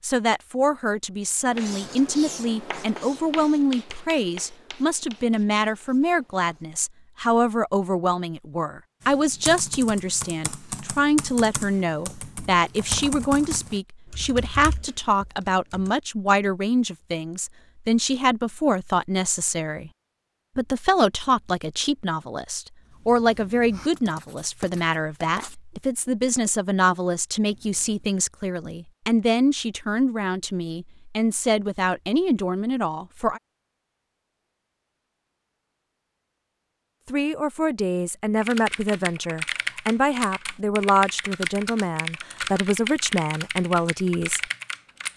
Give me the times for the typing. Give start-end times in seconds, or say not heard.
9.0-15.9, 38.4-45.1.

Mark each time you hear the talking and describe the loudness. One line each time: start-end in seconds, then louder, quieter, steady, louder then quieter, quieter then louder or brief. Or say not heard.
0.0-19.9 steady
20.6-33.4 steady
37.0-44.4 steady.